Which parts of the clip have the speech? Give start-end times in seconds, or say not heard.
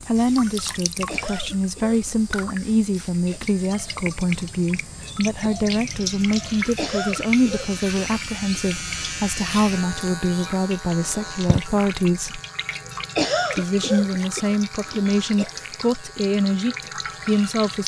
0.1-12.4, 13.6-17.8.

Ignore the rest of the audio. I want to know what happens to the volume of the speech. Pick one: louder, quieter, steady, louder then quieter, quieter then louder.
steady.